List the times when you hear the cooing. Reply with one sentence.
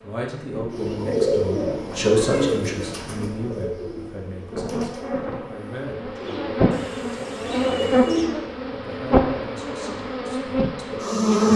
The cooing can be heard from 0.7 to 8.3 s.